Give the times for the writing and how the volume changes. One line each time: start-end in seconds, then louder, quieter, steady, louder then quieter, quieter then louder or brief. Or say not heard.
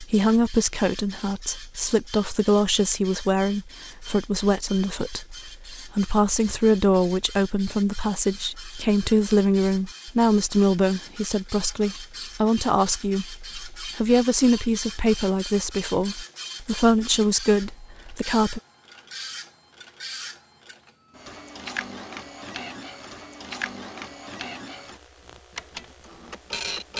not heard.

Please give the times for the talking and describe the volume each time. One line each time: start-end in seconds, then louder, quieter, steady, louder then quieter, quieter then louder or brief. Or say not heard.
0.0-18.6 steady.